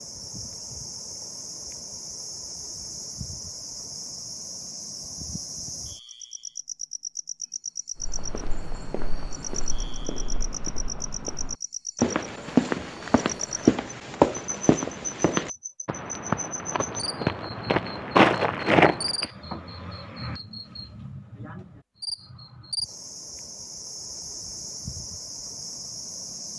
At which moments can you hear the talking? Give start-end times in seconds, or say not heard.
not heard.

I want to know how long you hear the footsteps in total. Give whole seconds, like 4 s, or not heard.
11 s.